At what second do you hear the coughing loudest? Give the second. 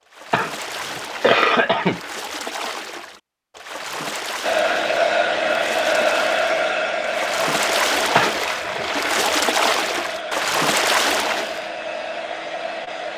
1 s.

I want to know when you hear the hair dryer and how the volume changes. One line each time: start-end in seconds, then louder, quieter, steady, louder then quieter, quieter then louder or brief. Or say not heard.
4.4-13.1 quieter.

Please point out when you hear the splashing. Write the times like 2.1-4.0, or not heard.
0.1-11.7.